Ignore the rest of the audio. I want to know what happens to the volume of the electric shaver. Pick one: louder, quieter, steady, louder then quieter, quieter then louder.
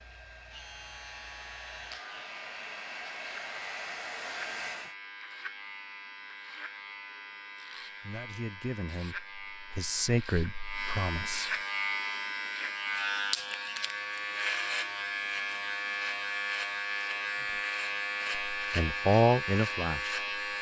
louder.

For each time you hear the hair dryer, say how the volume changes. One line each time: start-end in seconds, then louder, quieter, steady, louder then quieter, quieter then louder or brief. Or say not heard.
0.0-5.0 louder.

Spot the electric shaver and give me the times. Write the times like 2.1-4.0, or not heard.
0.0-20.5.